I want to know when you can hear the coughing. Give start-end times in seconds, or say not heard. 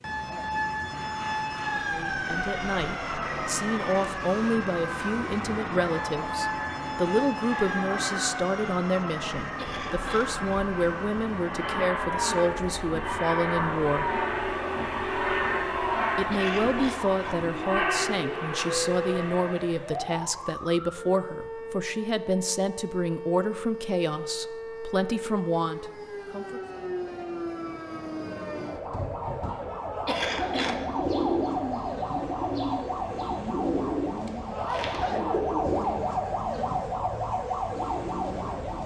9.6-10.6, 16.3-17.4, 30.1-30.9.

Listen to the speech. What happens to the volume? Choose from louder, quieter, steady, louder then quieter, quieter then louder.
steady.